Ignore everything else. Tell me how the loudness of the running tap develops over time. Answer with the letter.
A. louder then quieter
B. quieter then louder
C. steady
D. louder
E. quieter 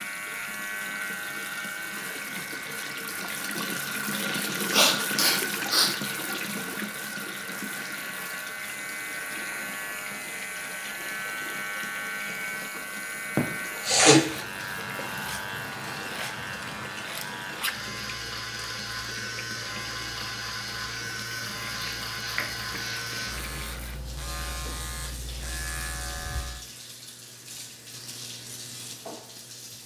E.